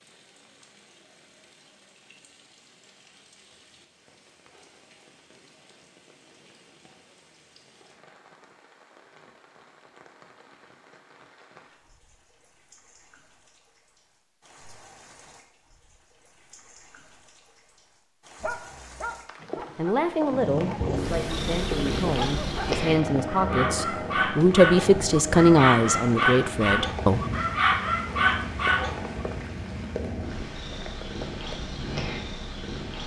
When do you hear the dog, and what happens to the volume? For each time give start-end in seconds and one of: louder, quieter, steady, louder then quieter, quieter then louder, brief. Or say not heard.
18.4-29.1 louder.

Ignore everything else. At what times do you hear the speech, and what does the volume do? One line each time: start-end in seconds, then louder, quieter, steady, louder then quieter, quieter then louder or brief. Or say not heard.
19.8-27.2 louder.